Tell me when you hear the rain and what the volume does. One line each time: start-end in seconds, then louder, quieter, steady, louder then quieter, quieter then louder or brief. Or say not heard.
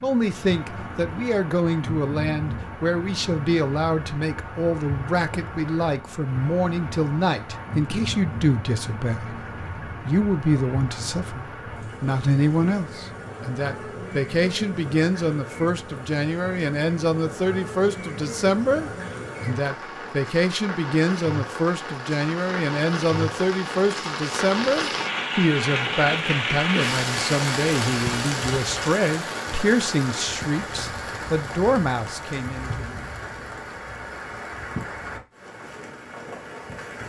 0.0-37.0 louder then quieter.